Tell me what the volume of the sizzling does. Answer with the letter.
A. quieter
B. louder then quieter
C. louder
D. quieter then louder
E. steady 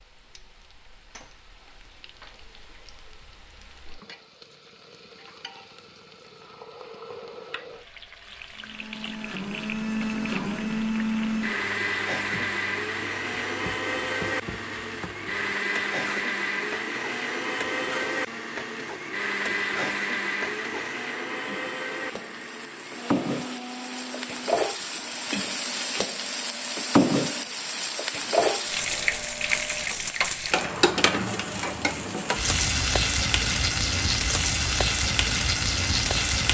C.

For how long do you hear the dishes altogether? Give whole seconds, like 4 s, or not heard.
not heard.